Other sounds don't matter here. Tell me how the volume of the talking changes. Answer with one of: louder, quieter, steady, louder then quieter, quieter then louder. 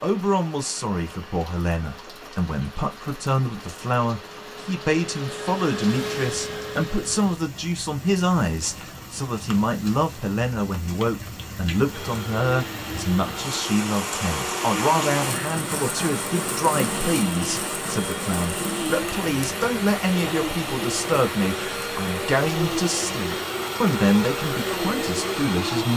steady.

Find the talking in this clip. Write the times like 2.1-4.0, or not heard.
0.0-25.9.